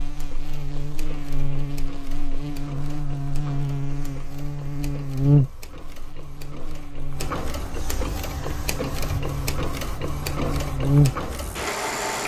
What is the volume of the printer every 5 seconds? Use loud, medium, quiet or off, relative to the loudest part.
quiet, medium, loud.